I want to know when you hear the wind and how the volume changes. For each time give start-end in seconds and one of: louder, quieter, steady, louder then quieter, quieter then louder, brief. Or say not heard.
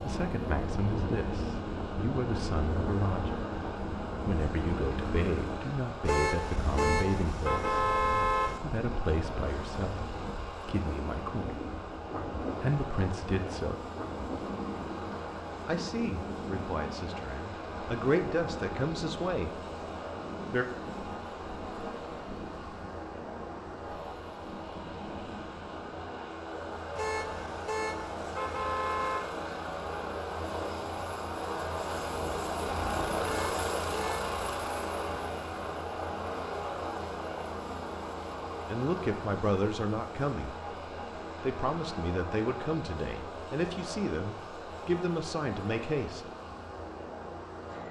0.0-26.1 quieter.